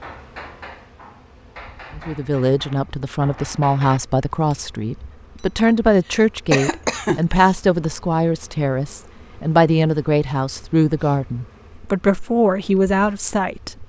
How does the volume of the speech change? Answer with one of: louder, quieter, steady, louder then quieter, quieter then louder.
steady.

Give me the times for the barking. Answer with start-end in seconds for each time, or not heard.
not heard.